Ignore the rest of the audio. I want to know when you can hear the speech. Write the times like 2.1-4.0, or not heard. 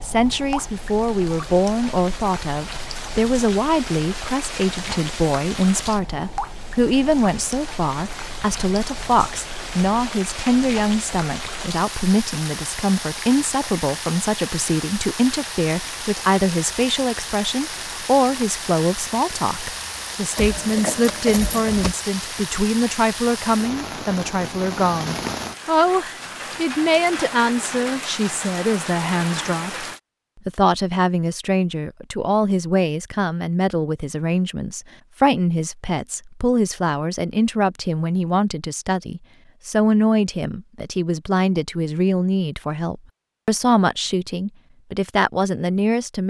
0.0-29.9, 30.4-46.2.